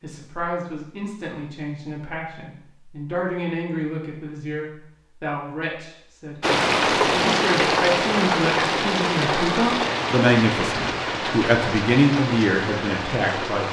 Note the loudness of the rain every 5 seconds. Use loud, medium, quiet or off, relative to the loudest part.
off, loud, medium.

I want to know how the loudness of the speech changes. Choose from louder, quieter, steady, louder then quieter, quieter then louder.
louder.